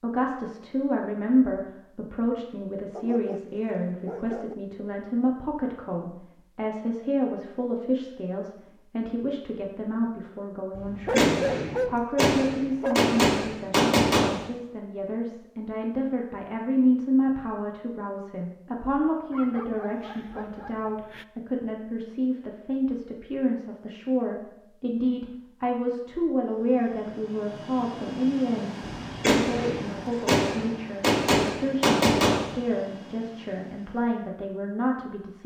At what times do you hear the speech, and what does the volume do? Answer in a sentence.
The speech can be heard from 0.0 to 35.4 s, at a steady volume.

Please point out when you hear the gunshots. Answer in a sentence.
The gunshots can be heard from 10.8 to 14.5 s and from 29.1 to 32.5 s.